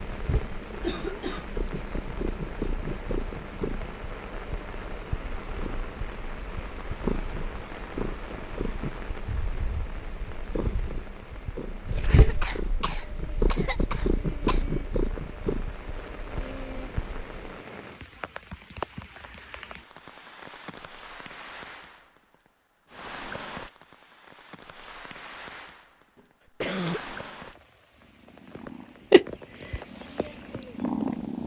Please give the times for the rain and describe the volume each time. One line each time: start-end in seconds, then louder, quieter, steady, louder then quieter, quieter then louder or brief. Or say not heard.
0.0-31.4 steady.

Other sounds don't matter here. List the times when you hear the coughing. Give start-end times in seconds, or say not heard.
0.7-1.6, 12.0-14.6, 26.1-27.0.